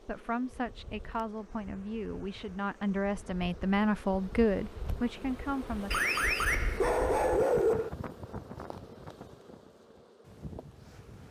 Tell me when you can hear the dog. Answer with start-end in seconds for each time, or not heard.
5.9-7.9.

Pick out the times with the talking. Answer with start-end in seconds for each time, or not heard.
0.0-5.9.